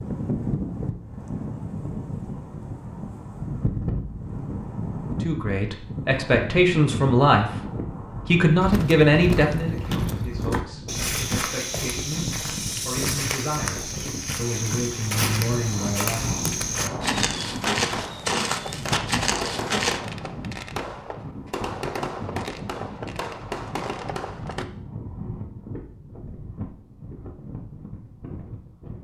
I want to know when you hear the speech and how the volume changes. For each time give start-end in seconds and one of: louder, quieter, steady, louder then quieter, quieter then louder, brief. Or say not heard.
5.2-16.4 quieter then louder.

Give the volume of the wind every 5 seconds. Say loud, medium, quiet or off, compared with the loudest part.
loud, loud, loud, loud, medium, medium.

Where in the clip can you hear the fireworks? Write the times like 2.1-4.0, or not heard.
17.0-24.6.